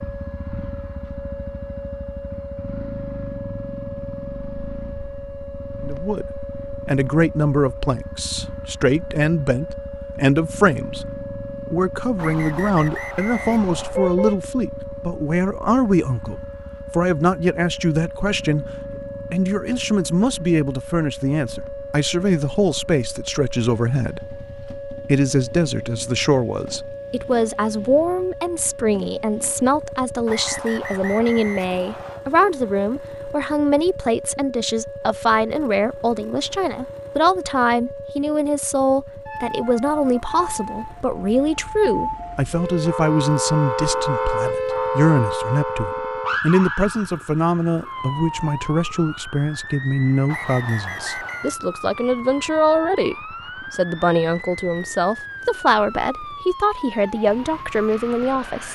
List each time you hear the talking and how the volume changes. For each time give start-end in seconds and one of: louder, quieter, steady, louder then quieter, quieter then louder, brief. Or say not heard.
5.8-58.7 steady.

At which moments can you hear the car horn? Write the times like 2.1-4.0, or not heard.
13.3-14.3.